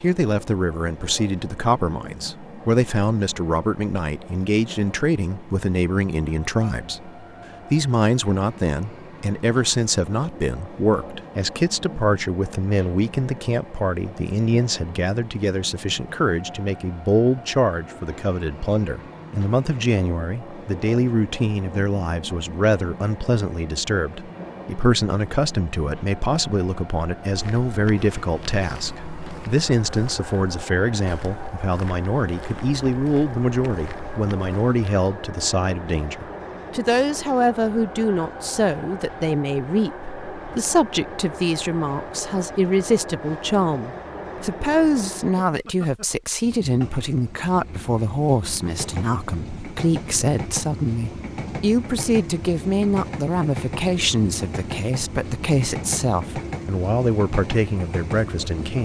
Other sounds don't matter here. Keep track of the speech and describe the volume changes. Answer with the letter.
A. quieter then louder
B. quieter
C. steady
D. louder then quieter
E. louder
C.